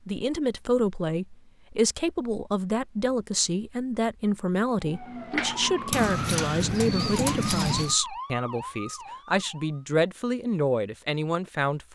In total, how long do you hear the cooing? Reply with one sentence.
The cooing can be heard for 2 seconds in total.